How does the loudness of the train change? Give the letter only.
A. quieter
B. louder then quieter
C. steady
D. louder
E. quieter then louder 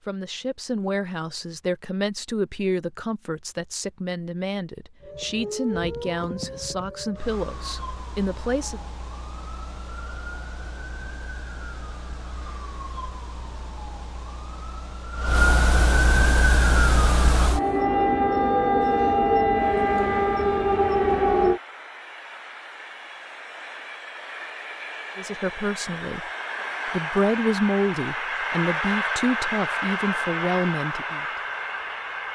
D.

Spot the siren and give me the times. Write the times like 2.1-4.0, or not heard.
5.0-21.6.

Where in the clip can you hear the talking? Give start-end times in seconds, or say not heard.
0.0-8.8, 25.1-26.2, 26.9-31.4.